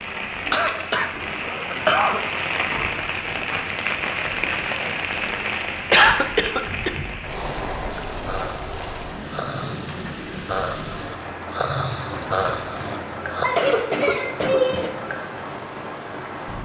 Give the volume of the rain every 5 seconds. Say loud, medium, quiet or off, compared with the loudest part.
loud, loud, medium, medium.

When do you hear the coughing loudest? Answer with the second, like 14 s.
6 s.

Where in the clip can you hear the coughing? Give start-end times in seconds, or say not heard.
0.5-2.2, 5.9-7.0, 13.4-14.9.